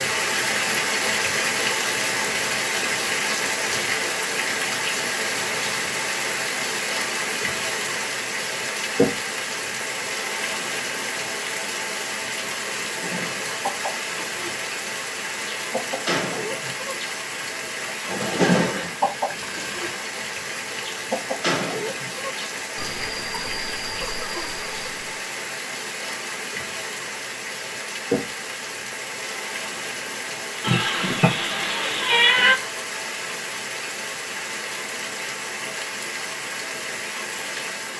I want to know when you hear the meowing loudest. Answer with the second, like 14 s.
32 s.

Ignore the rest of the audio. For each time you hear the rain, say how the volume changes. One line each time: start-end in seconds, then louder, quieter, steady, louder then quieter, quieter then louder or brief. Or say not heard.
0.0-37.9 quieter.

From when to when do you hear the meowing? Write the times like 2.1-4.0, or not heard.
30.6-32.5.